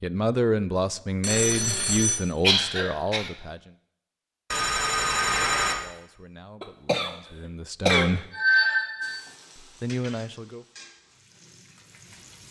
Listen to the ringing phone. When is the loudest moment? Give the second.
9 s.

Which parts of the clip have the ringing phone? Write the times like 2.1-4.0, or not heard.
1.2-2.2, 4.5-5.8, 8.3-9.2.